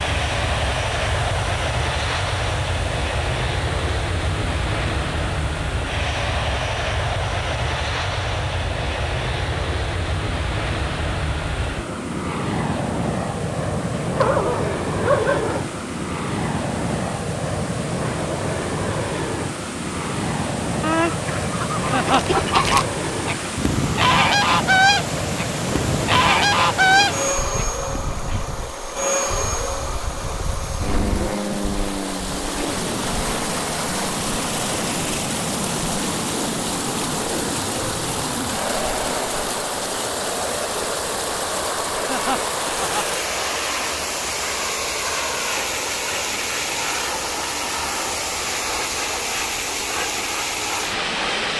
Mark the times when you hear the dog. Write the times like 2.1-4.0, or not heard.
14.2-15.7.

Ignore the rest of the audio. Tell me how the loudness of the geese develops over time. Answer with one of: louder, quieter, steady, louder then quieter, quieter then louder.
louder.